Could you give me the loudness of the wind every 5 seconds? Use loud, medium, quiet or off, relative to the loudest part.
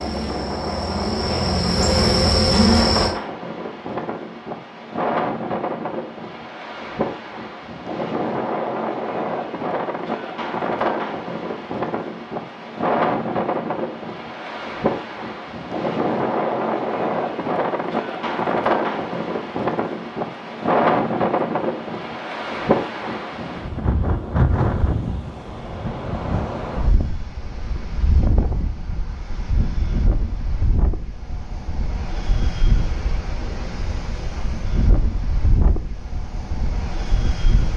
medium, loud, loud, loud, loud, medium, medium, medium.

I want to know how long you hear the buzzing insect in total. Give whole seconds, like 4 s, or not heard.
3 s.